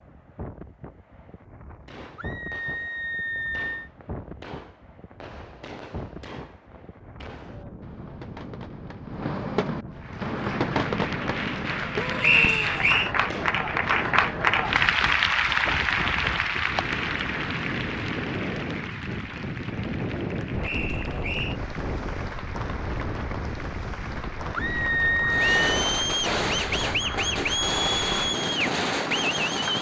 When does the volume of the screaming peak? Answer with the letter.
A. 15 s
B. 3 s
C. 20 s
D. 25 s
D.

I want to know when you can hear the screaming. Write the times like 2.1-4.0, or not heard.
2.1-3.9, 11.9-12.8, 24.6-25.6.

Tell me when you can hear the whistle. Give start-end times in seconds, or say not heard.
12.2-13.1, 20.6-21.6.